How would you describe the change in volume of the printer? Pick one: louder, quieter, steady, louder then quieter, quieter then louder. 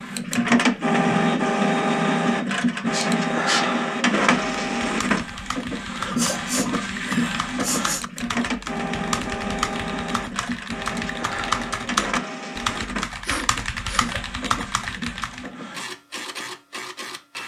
quieter.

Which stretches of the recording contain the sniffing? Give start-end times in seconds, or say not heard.
2.9-3.7, 6.2-8.1, 13.2-14.2.